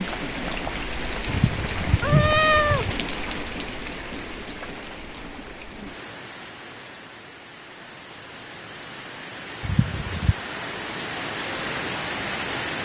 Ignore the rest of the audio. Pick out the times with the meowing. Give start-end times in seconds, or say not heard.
1.2-3.0, 9.6-10.4.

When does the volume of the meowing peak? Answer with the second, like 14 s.
2 s.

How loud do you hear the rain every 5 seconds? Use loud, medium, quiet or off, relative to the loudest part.
loud, medium, loud.